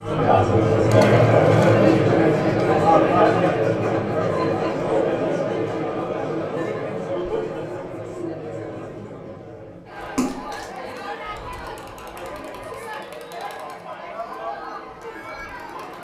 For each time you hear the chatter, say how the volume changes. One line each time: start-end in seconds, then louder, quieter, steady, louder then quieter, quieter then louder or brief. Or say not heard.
0.0-15.9 quieter.